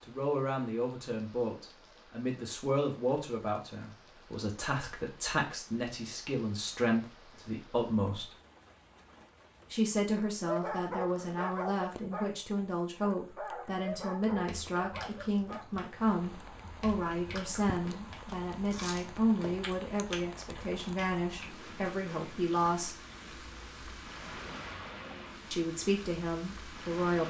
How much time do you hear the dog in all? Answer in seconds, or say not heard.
5 s.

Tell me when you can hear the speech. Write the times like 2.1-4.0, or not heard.
0.0-8.3, 9.7-22.9, 25.5-27.2.